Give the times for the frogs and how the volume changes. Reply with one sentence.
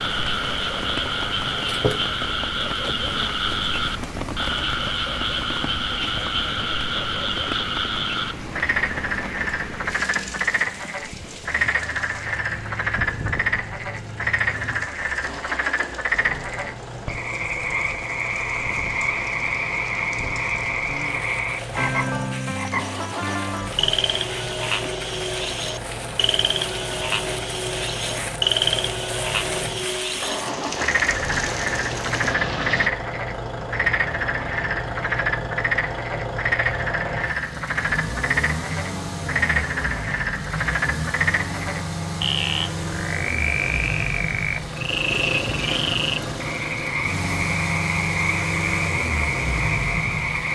The frogs can be heard from 0.0 to 50.5 s, at a steady volume.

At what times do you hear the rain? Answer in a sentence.
The rain can be heard from 0.0 to 32.9 s.